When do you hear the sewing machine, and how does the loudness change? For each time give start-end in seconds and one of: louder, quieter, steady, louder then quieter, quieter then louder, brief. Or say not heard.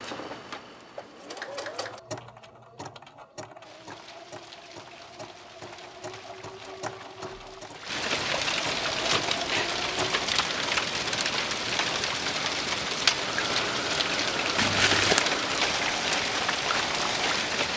0.0-10.3 quieter then louder
13.2-17.7 steady.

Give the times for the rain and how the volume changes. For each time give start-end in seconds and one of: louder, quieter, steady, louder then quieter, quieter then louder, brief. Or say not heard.
3.6-17.7 louder.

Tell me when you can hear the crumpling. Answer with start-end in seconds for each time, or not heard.
14.6-15.2.